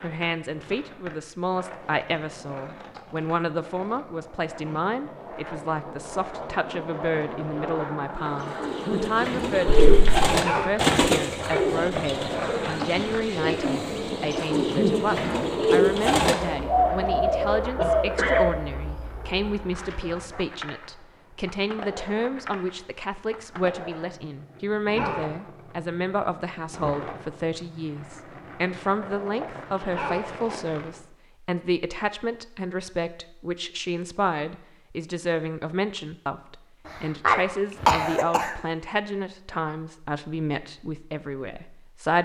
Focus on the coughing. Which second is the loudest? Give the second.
38 s.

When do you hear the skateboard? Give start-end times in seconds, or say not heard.
0.0-31.1.